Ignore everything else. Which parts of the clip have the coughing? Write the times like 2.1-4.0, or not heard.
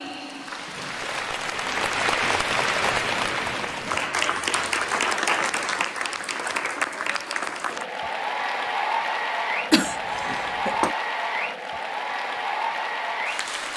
9.7-10.9.